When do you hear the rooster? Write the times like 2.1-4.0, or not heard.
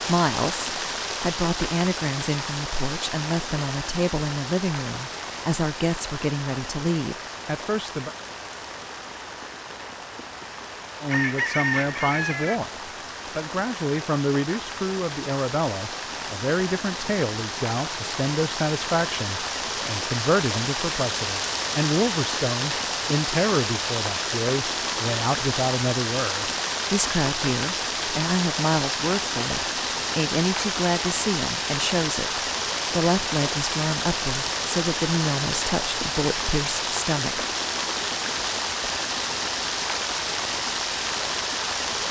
11.1-12.6.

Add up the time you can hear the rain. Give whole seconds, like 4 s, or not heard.
42 s.